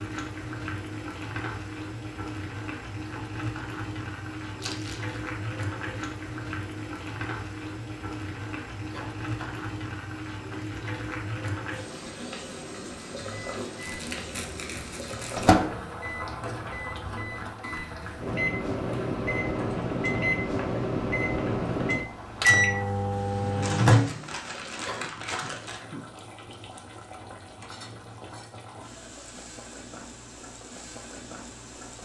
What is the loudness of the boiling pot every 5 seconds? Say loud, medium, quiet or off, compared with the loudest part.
loud, loud, loud, loud, medium, medium, medium.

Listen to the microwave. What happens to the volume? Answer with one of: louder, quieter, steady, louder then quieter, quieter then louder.
quieter then louder.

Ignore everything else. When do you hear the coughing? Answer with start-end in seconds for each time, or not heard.
8.9-9.7, 24.8-26.6.